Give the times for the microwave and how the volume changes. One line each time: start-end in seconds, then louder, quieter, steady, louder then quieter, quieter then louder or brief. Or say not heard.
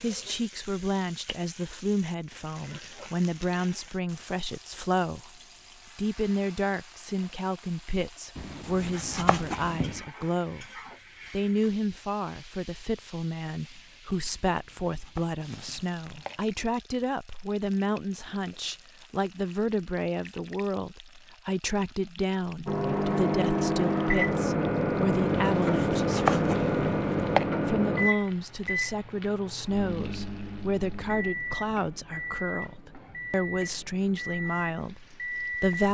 22.6-35.8 quieter.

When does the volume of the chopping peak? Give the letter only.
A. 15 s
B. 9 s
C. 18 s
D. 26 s
D.